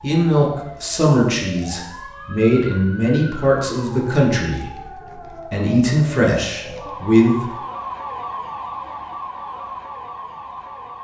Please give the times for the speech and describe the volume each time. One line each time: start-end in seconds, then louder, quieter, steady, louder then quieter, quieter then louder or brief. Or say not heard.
0.0-7.5 quieter then louder.